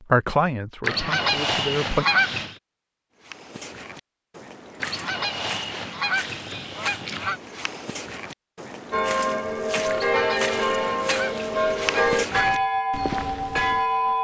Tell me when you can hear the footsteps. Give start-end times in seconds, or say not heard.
3.2-13.8.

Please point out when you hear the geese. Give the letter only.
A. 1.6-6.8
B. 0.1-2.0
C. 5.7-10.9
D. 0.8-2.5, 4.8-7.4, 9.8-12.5
D.